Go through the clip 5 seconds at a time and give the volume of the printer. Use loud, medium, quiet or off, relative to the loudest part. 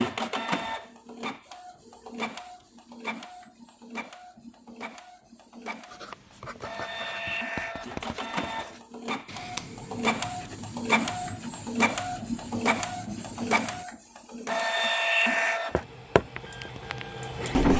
medium, medium, loud, loud.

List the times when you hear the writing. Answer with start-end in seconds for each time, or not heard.
5.8-13.8.